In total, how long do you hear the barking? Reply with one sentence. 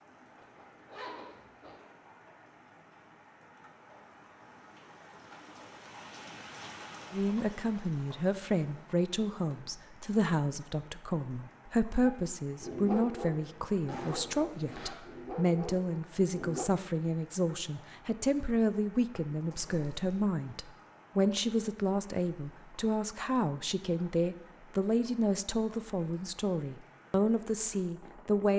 You can hear the barking for 5 seconds altogether.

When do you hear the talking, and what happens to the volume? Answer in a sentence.
You can hear the talking from 7.1 to 28.5 s, at a steady volume.